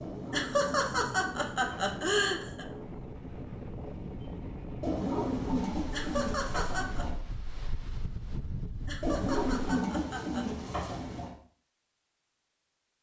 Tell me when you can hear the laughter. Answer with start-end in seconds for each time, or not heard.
0.3-2.6, 5.9-7.0, 8.8-10.4.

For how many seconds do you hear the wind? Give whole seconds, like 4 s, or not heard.
10 s.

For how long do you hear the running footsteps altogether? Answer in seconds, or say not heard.
not heard.